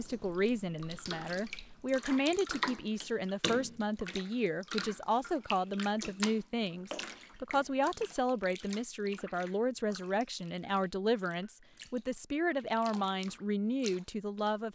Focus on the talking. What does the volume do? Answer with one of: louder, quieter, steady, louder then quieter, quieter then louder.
steady.